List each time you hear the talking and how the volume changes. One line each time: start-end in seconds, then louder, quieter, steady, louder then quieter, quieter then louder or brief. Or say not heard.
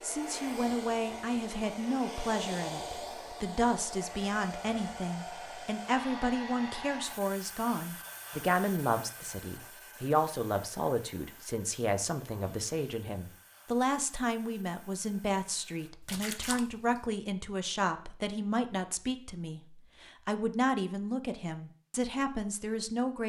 0.0-23.2 steady.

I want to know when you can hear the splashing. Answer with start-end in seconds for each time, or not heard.
16.0-17.0.